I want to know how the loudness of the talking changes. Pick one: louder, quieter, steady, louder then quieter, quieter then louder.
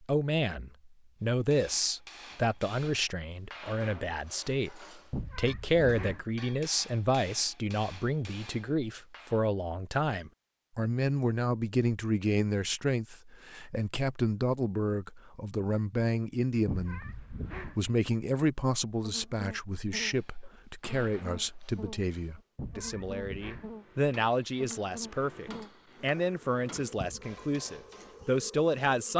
steady.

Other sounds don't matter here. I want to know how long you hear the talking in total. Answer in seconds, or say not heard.
29 s.